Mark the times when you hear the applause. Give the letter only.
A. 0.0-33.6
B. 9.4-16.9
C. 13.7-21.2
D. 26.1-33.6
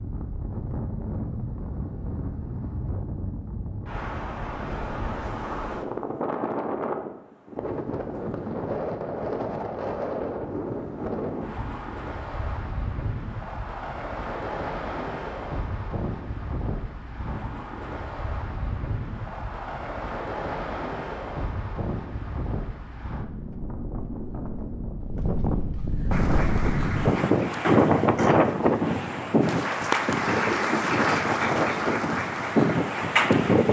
D.